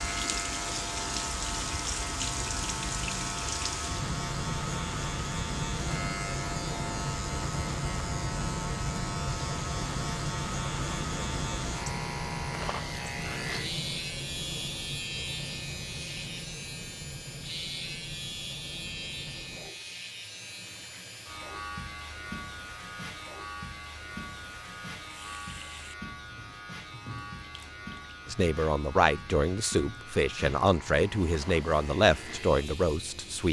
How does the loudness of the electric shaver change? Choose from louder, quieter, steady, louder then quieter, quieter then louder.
quieter.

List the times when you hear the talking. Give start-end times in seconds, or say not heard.
28.3-33.4.